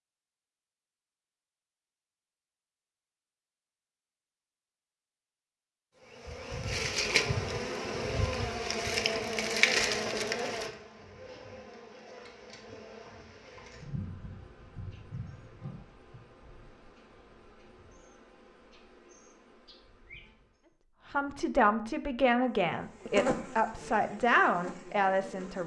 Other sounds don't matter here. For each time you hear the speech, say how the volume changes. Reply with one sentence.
You can hear the speech from 21.1 to 25.6 s, at a steady volume.